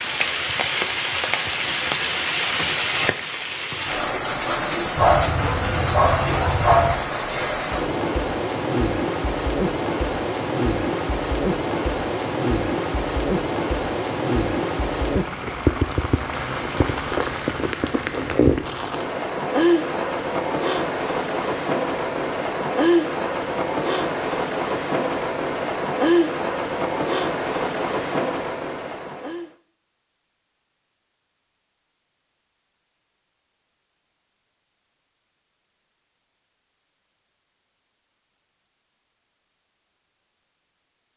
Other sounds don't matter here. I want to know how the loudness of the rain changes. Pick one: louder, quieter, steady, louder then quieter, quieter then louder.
steady.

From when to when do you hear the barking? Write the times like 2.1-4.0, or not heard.
5.0-7.0.